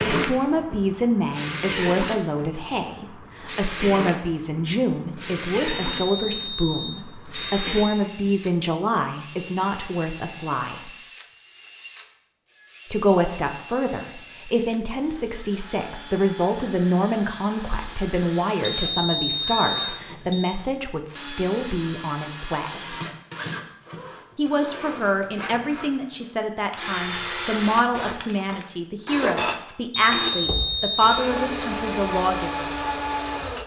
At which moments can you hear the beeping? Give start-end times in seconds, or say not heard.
5.9-8.3, 18.6-20.5, 29.9-31.6.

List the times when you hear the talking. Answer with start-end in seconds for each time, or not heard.
0.1-10.9, 12.9-22.9, 24.4-32.7.